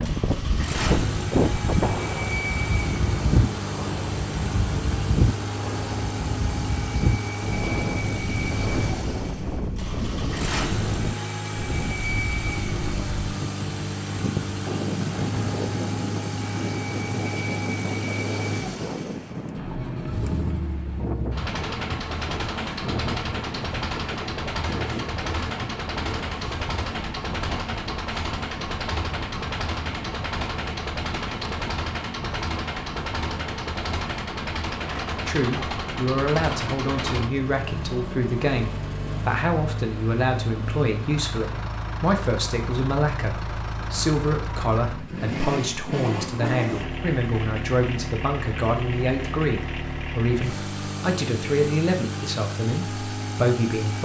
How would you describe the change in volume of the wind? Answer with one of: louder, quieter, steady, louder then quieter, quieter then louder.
quieter.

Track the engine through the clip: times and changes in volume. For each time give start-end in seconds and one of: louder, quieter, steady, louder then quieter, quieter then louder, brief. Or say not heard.
0.0-53.9 steady.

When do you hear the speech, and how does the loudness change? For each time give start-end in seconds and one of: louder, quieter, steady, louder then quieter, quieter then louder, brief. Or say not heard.
35.2-53.9 steady.